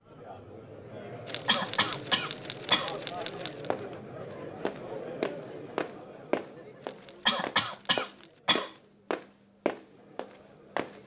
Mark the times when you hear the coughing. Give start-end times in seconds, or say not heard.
1.4-3.0, 7.2-8.7.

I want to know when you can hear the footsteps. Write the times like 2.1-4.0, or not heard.
3.7-11.0.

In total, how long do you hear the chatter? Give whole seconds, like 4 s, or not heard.
11 s.